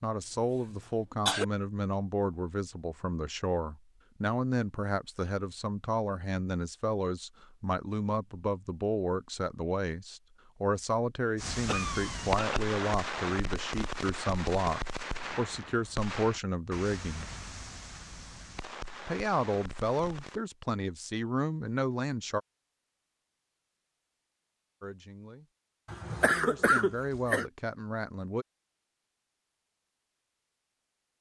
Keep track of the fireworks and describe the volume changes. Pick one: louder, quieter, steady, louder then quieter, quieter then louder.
quieter.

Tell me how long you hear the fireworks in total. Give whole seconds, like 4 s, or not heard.
9 s.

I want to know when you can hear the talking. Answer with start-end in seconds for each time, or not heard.
0.0-17.3, 19.1-22.4, 24.8-25.5, 26.2-28.4.